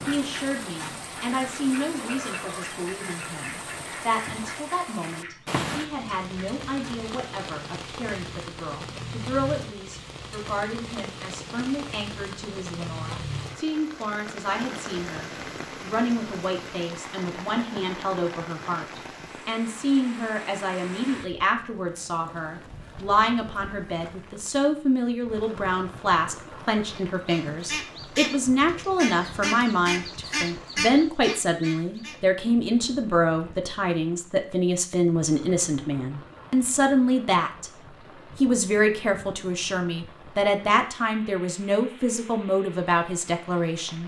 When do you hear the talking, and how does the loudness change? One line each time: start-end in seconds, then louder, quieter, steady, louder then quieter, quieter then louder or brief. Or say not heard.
0.0-37.7 louder
38.4-44.0 steady.